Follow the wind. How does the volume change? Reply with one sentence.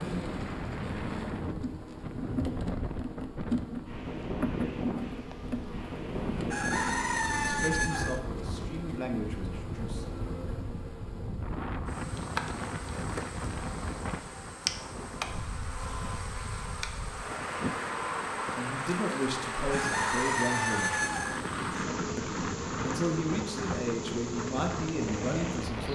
The volume of the wind stays about the same.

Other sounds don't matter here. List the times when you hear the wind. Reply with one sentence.
The wind can be heard from 0.0 to 25.9 s.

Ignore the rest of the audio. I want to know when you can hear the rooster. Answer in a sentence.
The rooster can be heard from 6.5 to 8.2 s and from 19.7 to 21.4 s.